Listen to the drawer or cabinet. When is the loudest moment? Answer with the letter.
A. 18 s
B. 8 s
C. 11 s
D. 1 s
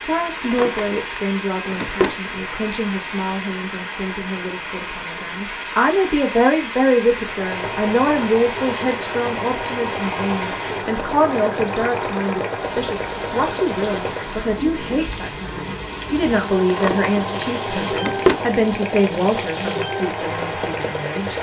A.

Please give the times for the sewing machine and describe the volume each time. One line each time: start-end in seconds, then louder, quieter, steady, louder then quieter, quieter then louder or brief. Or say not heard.
7.2-14.3 steady
16.1-21.3 steady.